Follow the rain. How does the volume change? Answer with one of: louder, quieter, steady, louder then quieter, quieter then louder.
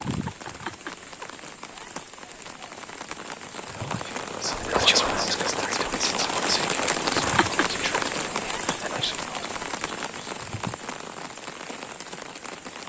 louder then quieter.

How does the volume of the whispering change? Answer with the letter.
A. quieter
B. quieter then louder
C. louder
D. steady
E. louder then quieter
A.